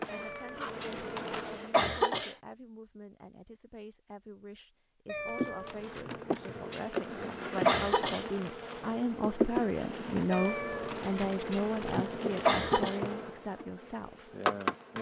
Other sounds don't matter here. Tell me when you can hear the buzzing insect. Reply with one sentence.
You can hear the buzzing insect from 0.0 to 1.8 s and from 5.3 to 14.9 s.